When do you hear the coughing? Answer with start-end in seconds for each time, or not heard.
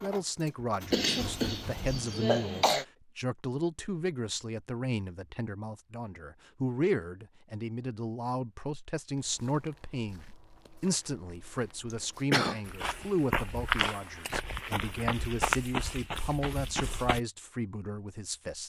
0.9-2.9, 11.9-12.6.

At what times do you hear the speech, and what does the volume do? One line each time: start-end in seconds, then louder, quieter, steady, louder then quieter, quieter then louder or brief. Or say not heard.
0.0-18.6 steady.